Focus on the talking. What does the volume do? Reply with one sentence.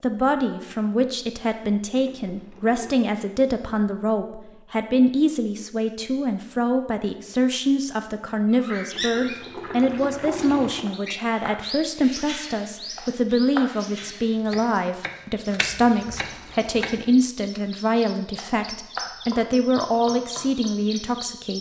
The loudness of the talking stays about the same.